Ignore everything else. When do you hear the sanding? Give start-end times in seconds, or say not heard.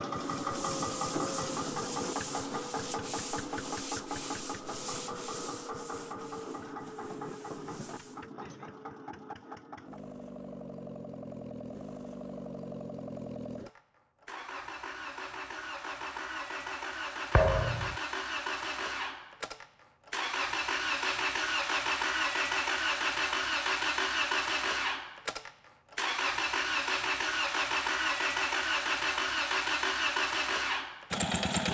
0.1-8.2.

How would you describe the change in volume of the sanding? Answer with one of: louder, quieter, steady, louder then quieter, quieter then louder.
quieter.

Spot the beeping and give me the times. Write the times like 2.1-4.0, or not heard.
not heard.